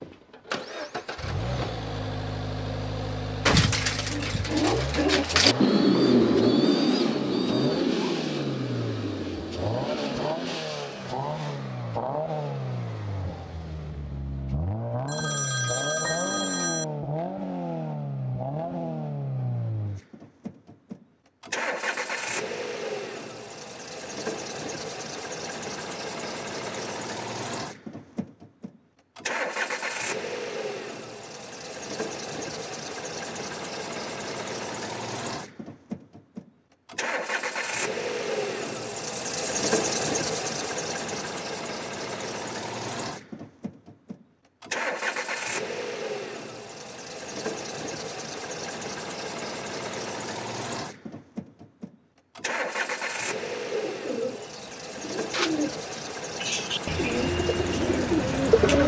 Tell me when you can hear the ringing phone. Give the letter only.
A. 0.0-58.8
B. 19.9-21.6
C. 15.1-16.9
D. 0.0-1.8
C.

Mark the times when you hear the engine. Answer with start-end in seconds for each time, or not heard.
0.0-58.8.